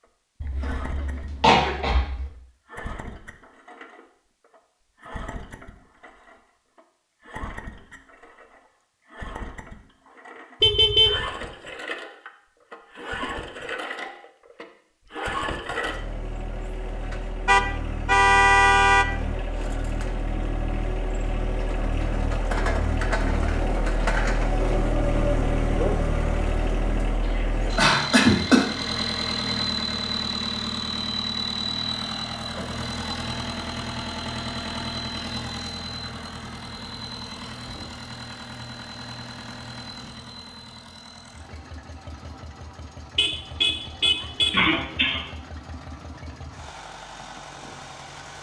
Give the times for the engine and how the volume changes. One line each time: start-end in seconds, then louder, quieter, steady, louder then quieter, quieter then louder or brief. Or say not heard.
0.0-48.3 louder then quieter.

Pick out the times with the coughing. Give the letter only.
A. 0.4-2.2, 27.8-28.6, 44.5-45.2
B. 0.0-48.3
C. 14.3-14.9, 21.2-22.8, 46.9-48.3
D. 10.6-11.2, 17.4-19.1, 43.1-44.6
A.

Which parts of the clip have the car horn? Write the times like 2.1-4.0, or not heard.
10.6-11.2, 17.4-19.1, 43.1-44.6.